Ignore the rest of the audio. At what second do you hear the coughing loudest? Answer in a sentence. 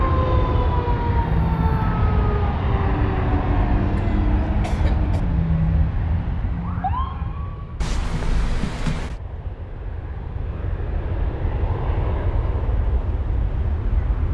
The loudest moment of the coughing is at 9 seconds.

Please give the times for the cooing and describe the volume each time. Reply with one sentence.
The cooing can't be heard in this clip.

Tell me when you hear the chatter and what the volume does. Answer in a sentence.
You can't hear the chatter here.